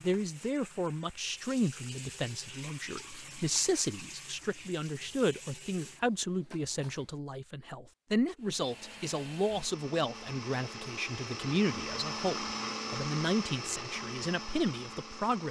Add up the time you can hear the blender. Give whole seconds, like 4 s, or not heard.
7 s.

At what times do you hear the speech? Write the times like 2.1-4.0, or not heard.
0.0-15.4.